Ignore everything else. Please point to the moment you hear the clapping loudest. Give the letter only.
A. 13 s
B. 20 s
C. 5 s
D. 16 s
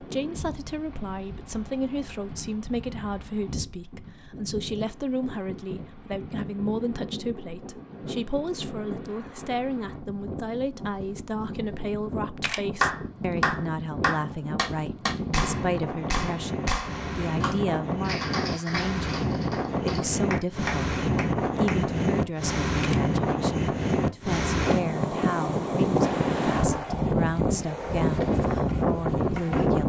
A.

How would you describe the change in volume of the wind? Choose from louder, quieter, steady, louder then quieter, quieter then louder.
louder.